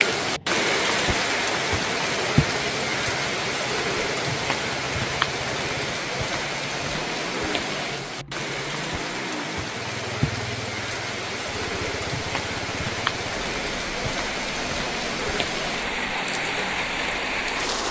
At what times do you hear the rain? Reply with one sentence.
You can hear the rain from 0.0 to 17.8 s.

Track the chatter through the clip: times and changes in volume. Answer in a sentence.
You can't hear the chatter here.